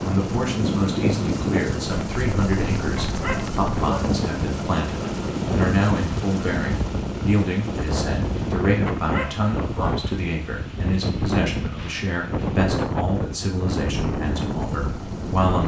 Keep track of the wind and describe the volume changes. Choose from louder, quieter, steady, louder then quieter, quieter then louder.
steady.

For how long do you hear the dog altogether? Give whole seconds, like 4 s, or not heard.
2 s.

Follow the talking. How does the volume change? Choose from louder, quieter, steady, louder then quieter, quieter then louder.
steady.